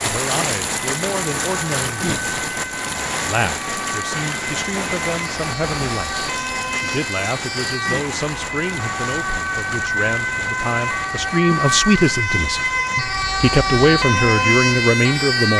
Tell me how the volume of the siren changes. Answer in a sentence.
The volume of the siren goes up.